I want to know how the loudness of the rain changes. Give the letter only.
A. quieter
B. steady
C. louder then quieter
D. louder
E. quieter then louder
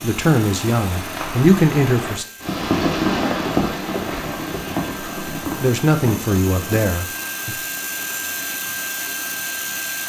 C.